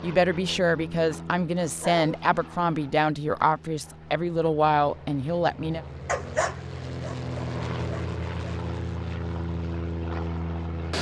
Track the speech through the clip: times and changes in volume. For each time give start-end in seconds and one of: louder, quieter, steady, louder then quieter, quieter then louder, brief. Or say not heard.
0.0-5.8 steady.